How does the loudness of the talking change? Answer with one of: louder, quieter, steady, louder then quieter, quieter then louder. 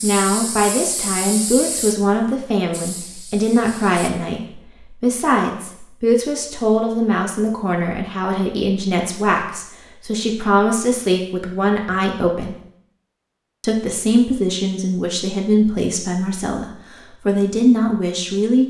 steady.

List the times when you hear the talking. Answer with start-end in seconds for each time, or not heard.
0.0-12.6, 13.6-18.6.